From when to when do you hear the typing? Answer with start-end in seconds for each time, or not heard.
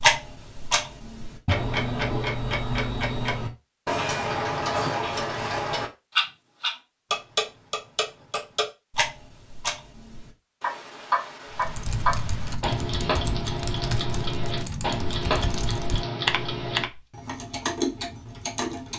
11.5-17.0.